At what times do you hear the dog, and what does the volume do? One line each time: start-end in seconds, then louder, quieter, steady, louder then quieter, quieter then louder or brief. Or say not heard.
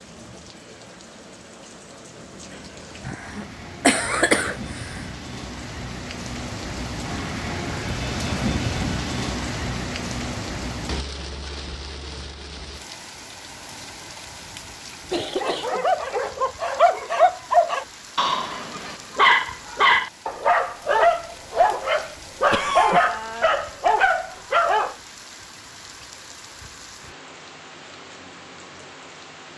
15.4-24.9 steady.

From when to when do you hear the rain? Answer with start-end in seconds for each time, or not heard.
0.0-29.5.